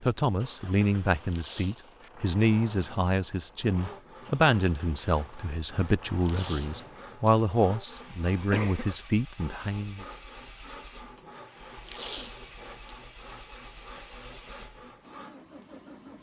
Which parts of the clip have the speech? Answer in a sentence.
You can hear the speech from 0.0 to 10.1 s.